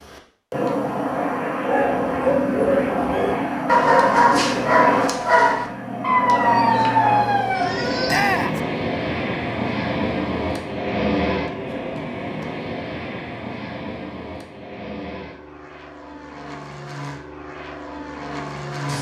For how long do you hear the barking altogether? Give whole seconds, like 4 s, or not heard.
7 s.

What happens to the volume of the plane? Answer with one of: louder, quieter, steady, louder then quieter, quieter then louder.
quieter.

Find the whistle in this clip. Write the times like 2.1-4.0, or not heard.
not heard.